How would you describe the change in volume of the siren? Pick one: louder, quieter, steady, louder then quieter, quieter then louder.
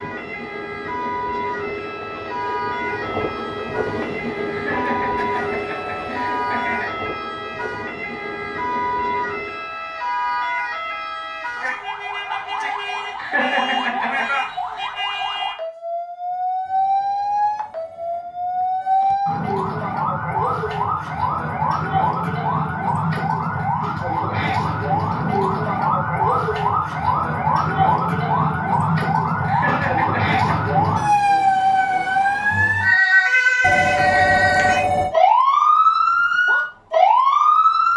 louder.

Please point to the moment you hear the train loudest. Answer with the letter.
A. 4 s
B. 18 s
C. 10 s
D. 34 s
A.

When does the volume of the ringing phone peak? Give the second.
34 s.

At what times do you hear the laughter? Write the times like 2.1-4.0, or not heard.
4.5-7.0, 13.2-14.3, 29.4-30.7.